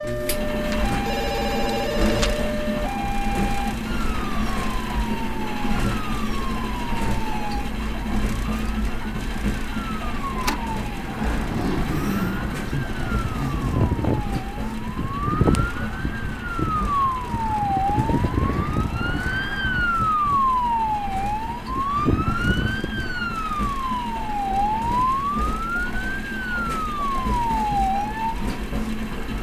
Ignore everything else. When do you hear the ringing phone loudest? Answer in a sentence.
The volume of the ringing phone peaks at 2 seconds.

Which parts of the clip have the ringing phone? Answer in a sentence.
You can hear the ringing phone from 0.7 to 2.5 s.